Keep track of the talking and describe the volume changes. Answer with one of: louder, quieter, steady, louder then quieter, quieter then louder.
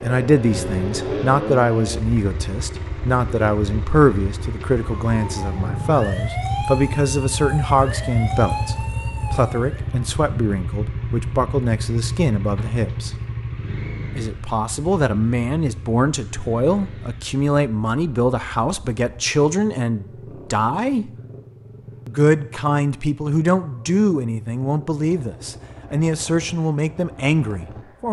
steady.